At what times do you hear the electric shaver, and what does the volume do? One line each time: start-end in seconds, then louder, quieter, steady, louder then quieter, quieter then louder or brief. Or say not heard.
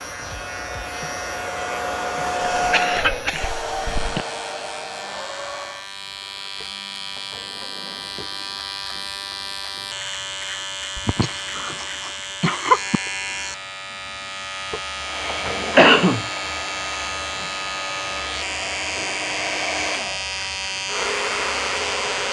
0.0-22.2 louder.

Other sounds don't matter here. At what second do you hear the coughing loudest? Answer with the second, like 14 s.
16 s.